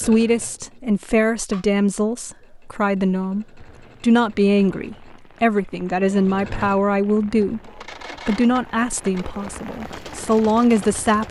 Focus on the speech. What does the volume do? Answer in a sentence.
The volume of the speech stays about the same.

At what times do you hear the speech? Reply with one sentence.
The speech can be heard from 0.0 to 11.2 s.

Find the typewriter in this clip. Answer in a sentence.
The typewriter can't be heard in this clip.